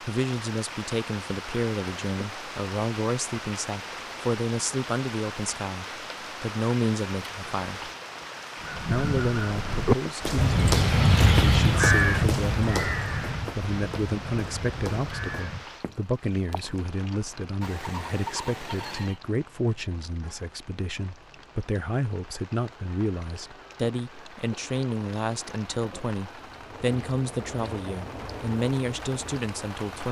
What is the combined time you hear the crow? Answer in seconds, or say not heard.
7 s.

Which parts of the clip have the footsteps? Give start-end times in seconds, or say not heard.
10.2-16.9.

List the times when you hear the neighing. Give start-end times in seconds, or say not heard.
17.6-19.2.